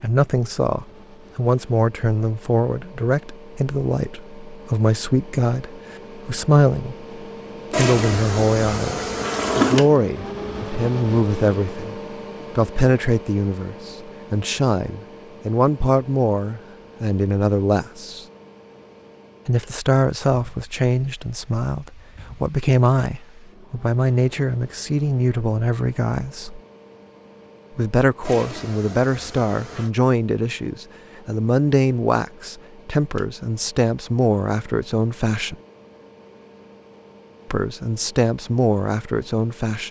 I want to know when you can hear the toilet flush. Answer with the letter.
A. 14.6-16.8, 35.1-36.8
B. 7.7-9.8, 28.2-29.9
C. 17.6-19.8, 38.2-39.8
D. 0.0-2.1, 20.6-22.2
B.